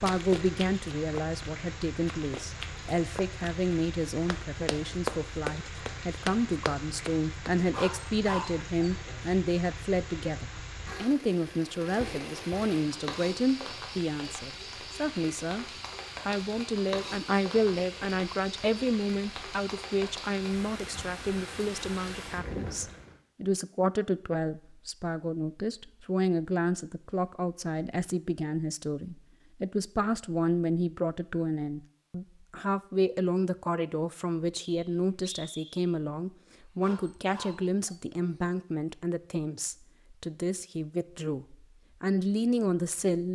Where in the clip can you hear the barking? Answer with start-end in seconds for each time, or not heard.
7.7-9.3, 36.8-38.5.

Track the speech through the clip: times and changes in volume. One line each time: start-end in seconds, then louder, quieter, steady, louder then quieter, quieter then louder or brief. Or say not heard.
0.0-15.7 steady
16.2-43.3 steady.